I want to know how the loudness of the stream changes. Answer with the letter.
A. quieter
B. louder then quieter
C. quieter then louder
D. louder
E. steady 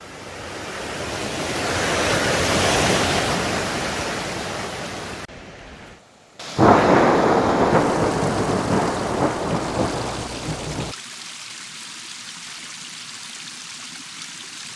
A.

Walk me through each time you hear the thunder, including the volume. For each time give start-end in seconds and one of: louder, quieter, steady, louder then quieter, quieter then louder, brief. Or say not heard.
6.5-10.9 quieter.